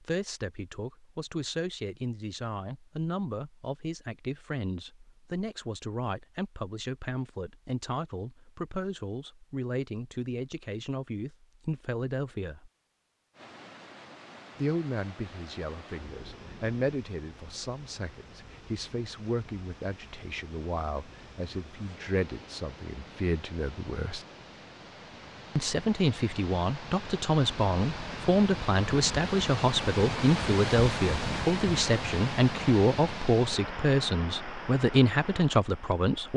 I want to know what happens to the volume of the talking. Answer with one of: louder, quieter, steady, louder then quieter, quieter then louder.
louder.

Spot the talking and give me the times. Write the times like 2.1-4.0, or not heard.
0.0-12.7, 14.6-24.2, 25.6-36.3.